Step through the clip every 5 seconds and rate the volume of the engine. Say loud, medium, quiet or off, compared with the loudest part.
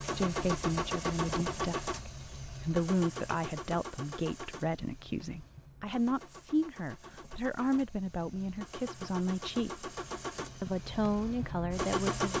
loud, medium, loud.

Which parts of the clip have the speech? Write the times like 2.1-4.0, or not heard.
0.0-9.9, 10.6-12.3.